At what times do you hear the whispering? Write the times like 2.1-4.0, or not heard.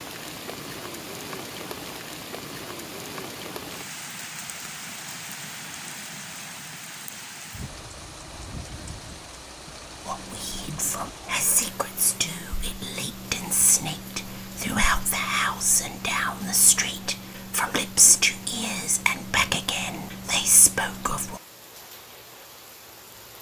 10.1-21.4.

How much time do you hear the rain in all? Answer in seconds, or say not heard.
23 s.